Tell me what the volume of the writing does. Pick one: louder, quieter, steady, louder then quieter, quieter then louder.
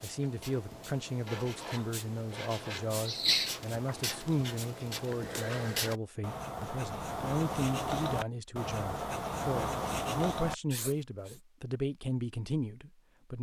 louder.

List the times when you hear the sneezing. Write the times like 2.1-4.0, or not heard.
3.0-4.0.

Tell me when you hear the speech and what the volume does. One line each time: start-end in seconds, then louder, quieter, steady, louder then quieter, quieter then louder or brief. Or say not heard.
0.0-13.3 steady.